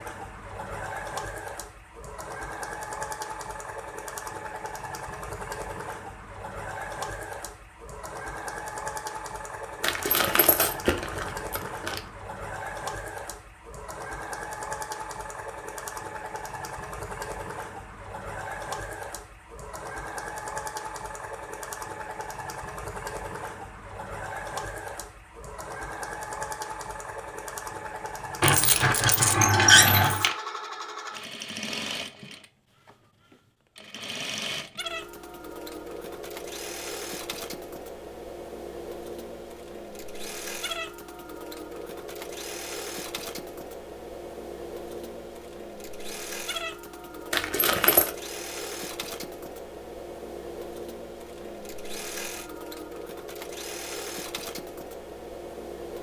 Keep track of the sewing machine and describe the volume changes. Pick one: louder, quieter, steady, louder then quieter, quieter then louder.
steady.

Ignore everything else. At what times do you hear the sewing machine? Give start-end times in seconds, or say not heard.
0.0-55.9.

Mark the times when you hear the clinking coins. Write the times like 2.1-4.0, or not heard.
9.8-12.0, 28.4-30.4, 47.3-48.1.